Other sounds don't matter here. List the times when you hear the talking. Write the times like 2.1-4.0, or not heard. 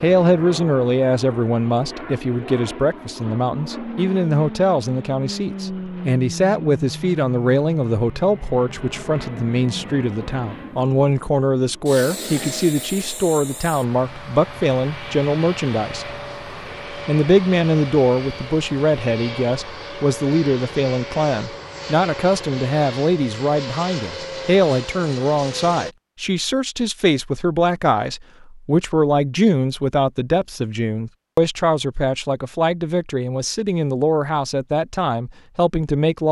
0.0-16.1, 16.9-36.2.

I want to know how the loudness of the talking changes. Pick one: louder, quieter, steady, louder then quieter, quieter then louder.
steady.